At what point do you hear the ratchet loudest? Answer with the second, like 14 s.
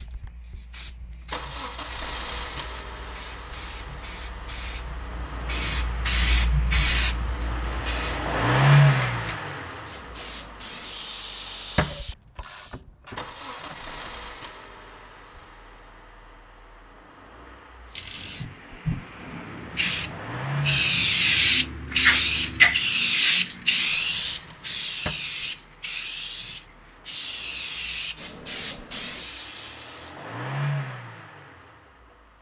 13 s.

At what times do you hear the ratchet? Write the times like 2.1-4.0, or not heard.
11.9-14.2.